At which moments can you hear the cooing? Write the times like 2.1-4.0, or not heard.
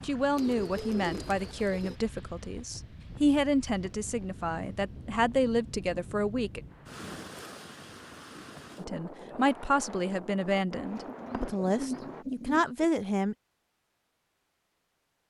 0.3-1.9, 10.8-12.8.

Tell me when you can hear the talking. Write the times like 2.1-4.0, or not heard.
0.0-6.6, 8.8-13.3.